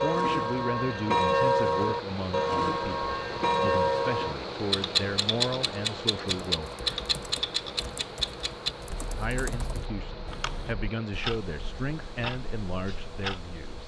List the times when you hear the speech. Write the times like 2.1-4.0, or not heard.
0.0-6.8, 9.2-13.8.